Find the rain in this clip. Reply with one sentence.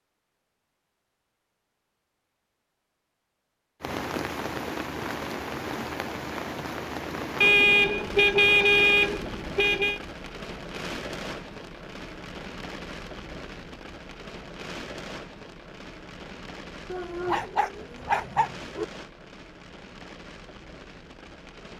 The rain can be heard from 3.8 to 21.7 s.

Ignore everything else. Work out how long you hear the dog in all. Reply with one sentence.
The dog can be heard for 2 seconds in total.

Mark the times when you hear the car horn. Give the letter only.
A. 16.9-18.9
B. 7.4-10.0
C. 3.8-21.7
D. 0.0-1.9
B.